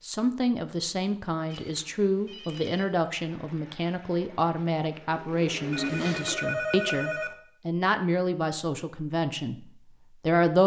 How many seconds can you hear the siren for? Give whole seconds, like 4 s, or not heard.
not heard.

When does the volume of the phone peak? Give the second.
7 s.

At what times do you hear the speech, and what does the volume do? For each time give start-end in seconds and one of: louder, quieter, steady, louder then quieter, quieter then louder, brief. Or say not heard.
0.0-10.6 steady.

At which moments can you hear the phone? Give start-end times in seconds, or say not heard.
1.5-3.0, 5.7-7.3.